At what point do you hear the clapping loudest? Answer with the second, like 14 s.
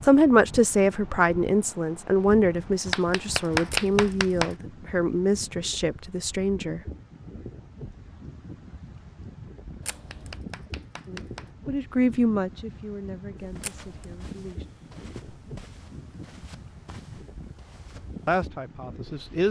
4 s.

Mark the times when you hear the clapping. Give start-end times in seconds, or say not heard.
2.9-4.5, 9.8-11.6.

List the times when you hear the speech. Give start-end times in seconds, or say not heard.
0.0-6.8, 11.1-14.7, 18.2-19.4.